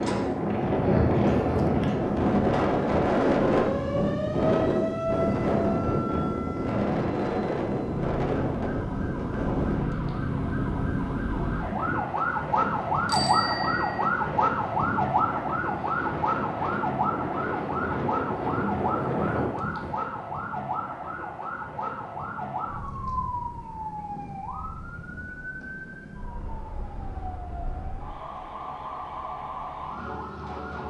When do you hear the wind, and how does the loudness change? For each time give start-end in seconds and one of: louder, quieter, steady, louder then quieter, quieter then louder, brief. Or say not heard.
0.0-19.9 quieter then louder.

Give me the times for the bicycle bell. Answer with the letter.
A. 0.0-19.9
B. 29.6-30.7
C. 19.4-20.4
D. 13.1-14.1
D.